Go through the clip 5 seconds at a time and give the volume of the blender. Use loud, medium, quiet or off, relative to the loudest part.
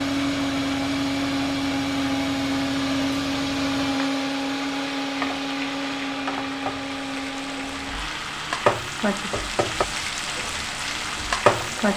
loud, medium, quiet.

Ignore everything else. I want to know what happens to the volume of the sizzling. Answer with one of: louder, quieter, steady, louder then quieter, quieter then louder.
louder.